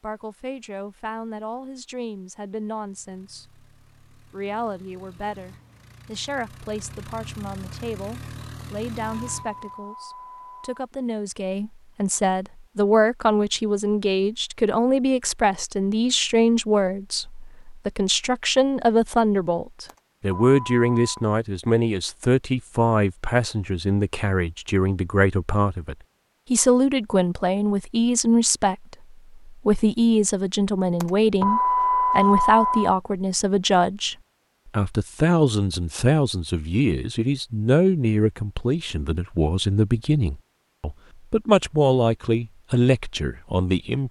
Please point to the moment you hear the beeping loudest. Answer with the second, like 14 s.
32 s.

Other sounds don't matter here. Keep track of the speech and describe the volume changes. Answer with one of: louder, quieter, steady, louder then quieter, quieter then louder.
louder.